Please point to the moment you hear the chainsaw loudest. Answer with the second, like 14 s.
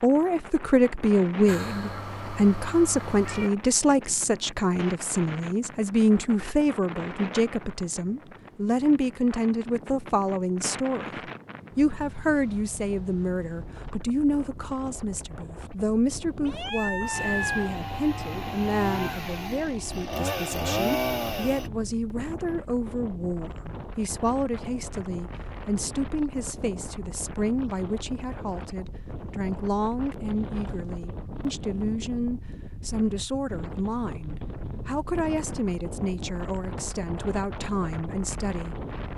21 s.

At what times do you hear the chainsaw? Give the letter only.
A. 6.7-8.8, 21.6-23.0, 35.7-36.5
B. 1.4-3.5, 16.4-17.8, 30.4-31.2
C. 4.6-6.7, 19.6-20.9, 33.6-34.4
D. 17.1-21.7
D.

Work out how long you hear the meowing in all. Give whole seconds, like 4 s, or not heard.
4 s.